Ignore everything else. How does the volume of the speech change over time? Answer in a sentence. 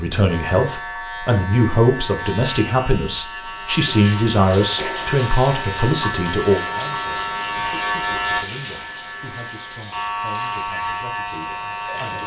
The volume of the speech goes down.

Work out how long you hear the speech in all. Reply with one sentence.
The speech can be heard for 12 seconds in total.